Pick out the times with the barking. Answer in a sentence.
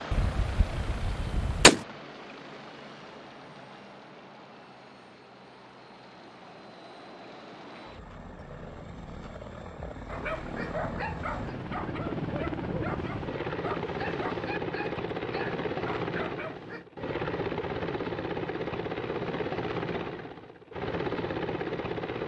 You can hear the barking from 10.1 to 16.9 s.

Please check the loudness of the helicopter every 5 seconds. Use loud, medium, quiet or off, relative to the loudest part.
medium, quiet, loud, loud, loud.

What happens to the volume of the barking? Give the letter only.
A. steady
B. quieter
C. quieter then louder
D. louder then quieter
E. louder
A.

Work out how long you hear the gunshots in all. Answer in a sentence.
The gunshots can be heard for 2 seconds in total.